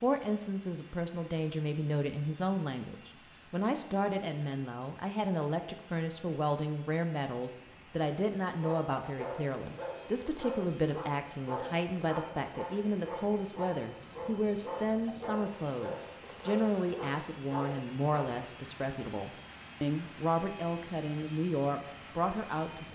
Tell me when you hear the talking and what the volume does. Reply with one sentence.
You can hear the talking from 0.0 to 22.9 s, at a steady volume.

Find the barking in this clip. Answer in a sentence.
You can hear the barking from 8.6 to 18.1 s.